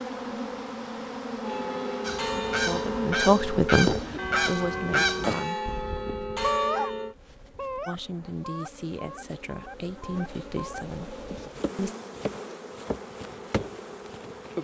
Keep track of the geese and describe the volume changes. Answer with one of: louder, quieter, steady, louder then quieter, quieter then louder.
quieter.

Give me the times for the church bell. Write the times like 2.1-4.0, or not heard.
1.4-7.2.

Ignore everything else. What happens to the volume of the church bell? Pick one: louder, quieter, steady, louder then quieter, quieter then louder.
steady.